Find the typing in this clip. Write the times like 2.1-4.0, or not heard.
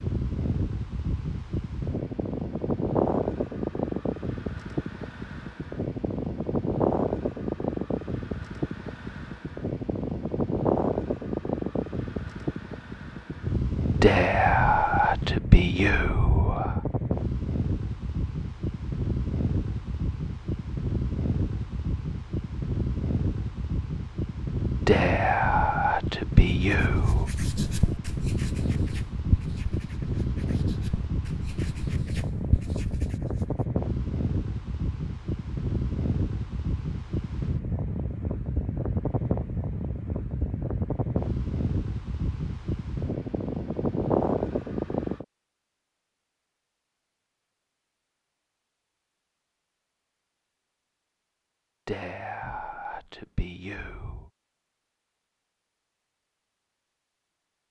not heard.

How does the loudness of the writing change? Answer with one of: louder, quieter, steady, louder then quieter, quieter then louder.
quieter then louder.